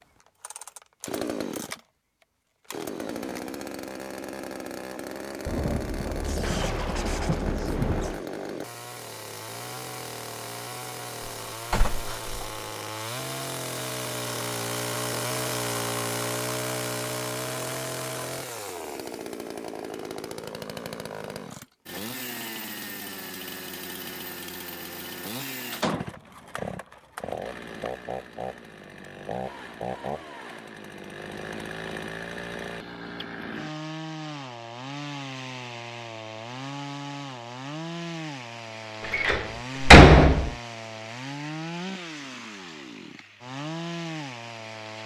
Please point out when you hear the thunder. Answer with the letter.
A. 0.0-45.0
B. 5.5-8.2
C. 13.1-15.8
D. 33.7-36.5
B.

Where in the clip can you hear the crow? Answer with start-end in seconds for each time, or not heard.
not heard.